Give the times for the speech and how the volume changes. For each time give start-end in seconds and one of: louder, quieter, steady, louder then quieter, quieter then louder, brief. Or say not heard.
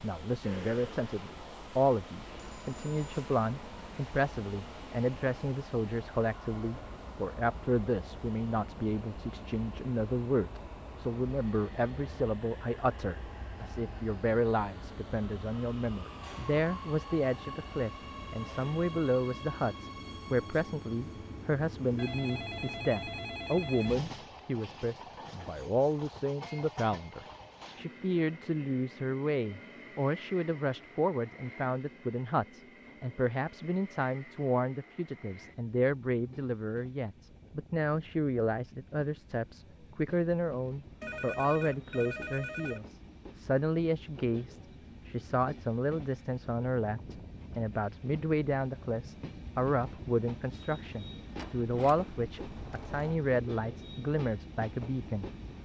0.0-55.3 steady.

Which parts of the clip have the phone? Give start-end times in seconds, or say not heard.
2.4-3.2, 21.9-24.0, 41.0-42.9.